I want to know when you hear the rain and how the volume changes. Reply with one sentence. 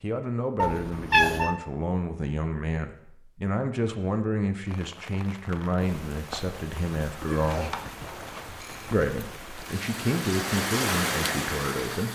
You can hear the rain from 4.7 to 12.1 s, getting louder.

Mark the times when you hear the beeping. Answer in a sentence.
You can't hear the beeping here.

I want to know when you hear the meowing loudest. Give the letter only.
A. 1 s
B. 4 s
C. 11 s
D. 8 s
A.